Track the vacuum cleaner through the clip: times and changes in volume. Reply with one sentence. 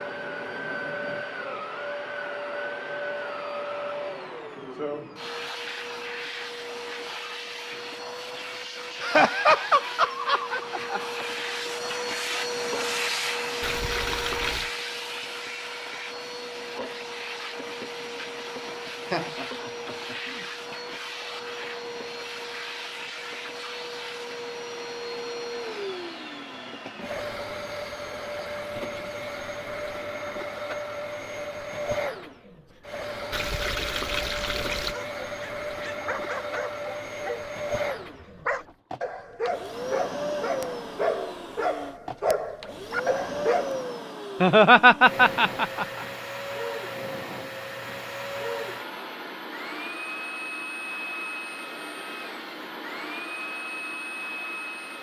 You can hear the vacuum cleaner from 0.0 to 54.9 s, at a steady volume.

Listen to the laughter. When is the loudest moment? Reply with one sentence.
The volume of the laughter peaks at 45 seconds.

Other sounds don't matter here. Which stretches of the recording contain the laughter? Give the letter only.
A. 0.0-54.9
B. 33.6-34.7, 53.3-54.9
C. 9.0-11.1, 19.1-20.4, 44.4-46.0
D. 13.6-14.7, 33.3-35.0
C.